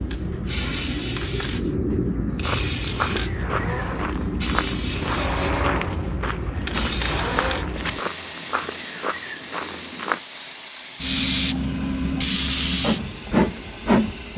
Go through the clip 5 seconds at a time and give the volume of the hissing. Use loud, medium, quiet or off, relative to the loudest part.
loud, medium, loud.